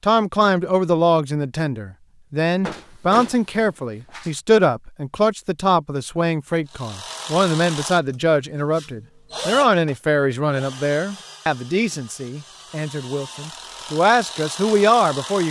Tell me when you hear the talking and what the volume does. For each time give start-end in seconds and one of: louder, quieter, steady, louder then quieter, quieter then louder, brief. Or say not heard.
0.0-15.4 steady.